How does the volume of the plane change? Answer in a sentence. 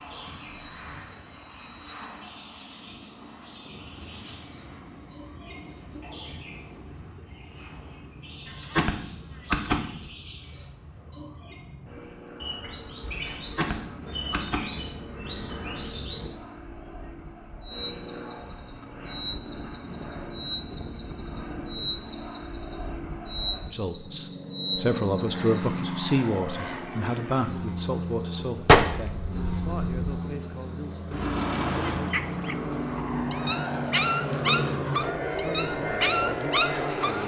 The volume of the plane goes up.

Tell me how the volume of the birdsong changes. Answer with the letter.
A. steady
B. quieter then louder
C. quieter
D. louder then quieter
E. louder
E.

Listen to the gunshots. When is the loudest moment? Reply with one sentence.
The loudest moment of the gunshots is at 29 seconds.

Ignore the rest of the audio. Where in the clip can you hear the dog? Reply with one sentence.
You can hear the dog from 31.8 to 37.2 s.